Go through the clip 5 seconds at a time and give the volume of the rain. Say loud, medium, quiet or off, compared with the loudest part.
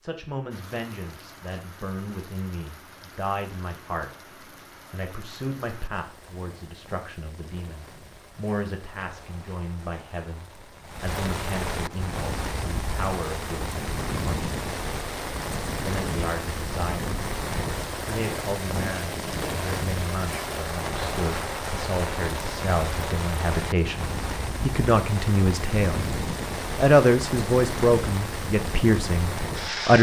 quiet, quiet, loud, loud, loud, loud.